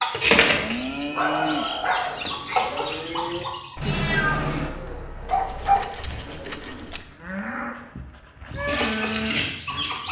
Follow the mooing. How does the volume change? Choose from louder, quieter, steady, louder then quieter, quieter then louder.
quieter then louder.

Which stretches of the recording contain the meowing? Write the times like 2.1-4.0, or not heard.
3.8-4.7.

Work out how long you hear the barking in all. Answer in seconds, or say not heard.
3 s.